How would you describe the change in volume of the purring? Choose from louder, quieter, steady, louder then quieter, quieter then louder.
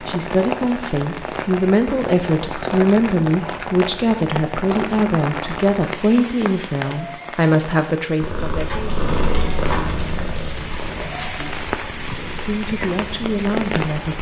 quieter.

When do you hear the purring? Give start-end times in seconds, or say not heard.
8.2-14.1.